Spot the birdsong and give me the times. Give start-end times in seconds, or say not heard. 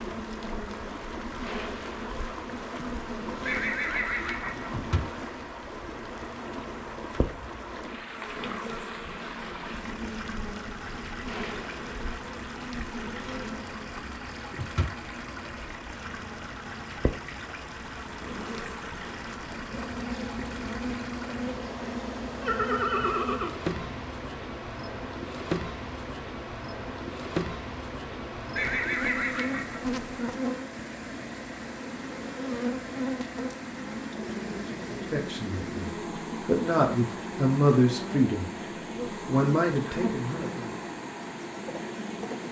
not heard.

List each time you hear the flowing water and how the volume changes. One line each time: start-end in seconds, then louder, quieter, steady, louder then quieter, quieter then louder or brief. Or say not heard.
0.0-42.4 steady.